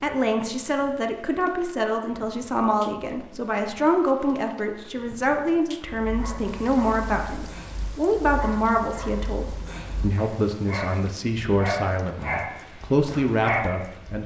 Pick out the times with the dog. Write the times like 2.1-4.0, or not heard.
5.8-14.2.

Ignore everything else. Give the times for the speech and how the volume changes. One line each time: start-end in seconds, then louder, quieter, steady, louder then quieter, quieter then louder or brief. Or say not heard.
0.0-14.2 steady.